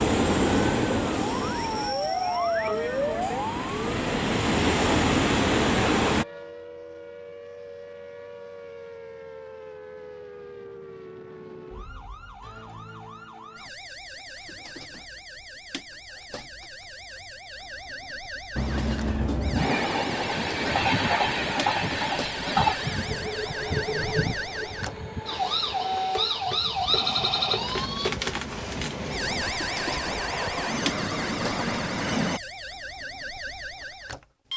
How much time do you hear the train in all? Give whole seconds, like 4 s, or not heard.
20 s.